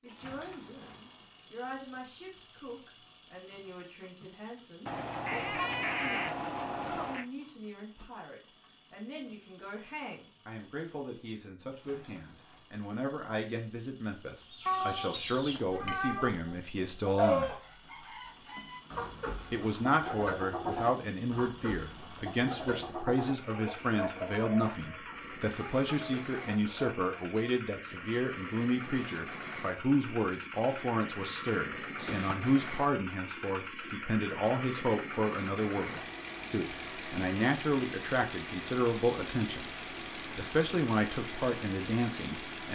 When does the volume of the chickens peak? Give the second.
17 s.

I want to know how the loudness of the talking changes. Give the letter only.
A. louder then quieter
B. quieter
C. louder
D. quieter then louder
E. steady
C.